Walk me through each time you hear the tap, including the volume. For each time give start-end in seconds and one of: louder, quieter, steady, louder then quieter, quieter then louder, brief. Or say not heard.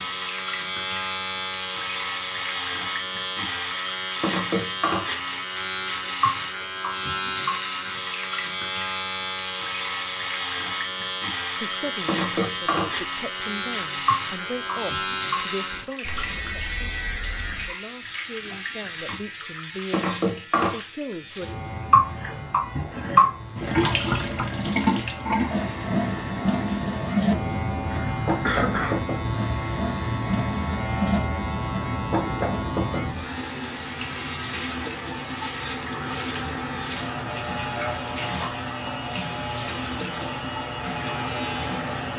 0.0-42.1 louder then quieter.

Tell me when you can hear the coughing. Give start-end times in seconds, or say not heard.
27.9-29.1.